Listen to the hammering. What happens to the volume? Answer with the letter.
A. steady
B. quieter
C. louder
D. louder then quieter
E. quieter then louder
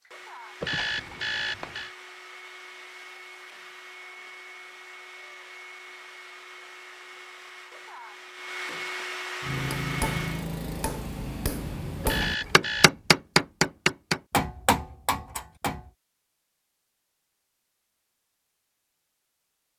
D.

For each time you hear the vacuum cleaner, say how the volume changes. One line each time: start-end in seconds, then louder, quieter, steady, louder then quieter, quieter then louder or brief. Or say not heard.
0.0-10.5 louder.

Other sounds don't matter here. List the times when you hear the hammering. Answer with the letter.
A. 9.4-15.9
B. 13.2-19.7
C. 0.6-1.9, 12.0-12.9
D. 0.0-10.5
A.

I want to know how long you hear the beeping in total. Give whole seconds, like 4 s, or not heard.
2 s.